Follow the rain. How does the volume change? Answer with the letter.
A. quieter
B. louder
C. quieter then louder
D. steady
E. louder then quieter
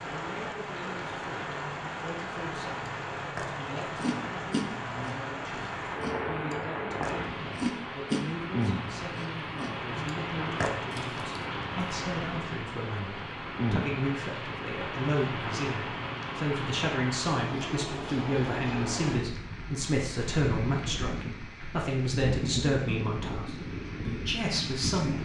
D.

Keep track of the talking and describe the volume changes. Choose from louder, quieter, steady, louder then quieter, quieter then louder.
louder.